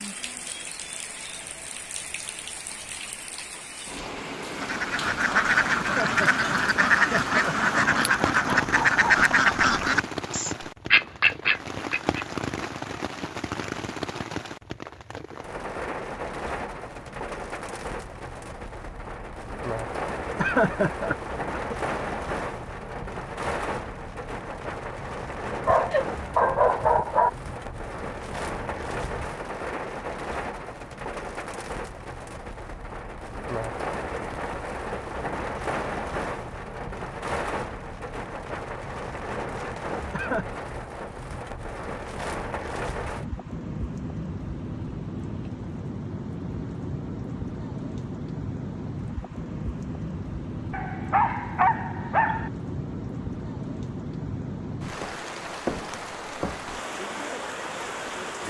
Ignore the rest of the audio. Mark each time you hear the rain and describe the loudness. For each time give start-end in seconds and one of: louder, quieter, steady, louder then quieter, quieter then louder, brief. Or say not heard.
0.0-58.4 steady.